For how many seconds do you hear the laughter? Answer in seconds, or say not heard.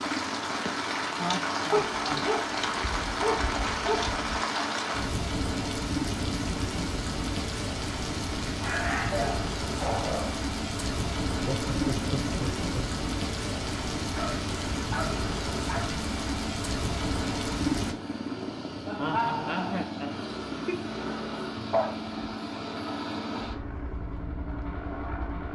5 s.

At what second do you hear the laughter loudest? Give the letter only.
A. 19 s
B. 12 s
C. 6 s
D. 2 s
A.